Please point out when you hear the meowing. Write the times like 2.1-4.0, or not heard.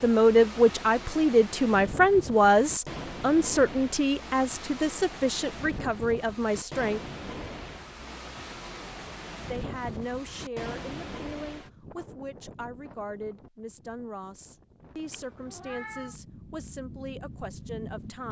15.1-16.2.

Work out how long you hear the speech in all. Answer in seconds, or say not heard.
16 s.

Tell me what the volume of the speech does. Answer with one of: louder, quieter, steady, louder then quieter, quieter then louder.
quieter.